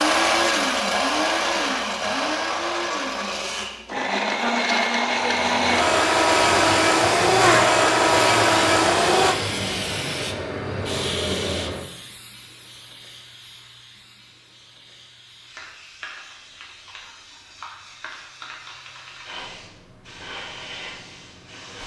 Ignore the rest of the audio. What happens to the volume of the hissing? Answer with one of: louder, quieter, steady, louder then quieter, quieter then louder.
quieter then louder.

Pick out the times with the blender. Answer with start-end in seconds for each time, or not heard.
0.0-9.3.